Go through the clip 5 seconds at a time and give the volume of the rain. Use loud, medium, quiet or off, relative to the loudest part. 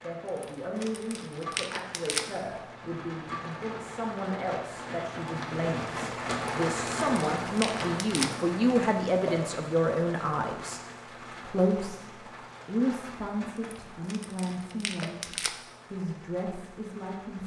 medium, loud, medium, quiet.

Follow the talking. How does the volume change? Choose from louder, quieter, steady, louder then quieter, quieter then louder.
louder then quieter.